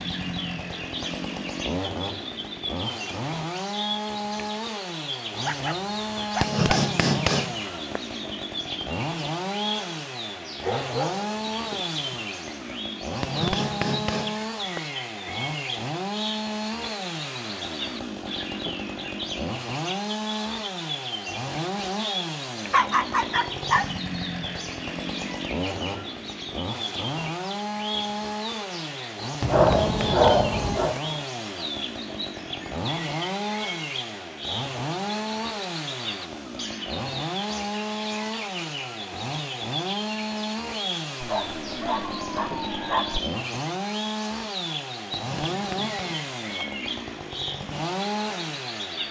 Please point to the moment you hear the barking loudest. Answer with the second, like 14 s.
30 s.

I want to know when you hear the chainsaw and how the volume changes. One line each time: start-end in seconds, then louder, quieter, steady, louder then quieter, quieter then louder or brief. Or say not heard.
0.0-49.0 steady.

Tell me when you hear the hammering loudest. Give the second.
7 s.